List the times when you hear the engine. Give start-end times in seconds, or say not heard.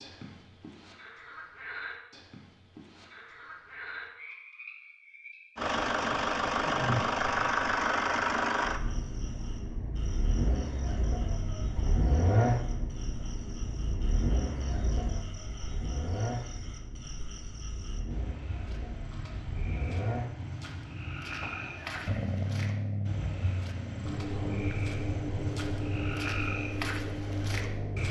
5.5-28.0.